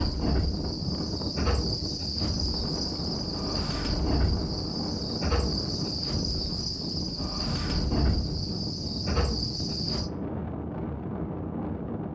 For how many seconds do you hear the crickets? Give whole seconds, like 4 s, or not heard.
10 s.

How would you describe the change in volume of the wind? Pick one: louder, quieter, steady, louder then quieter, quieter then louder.
steady.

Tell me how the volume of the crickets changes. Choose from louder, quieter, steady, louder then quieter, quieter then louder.
steady.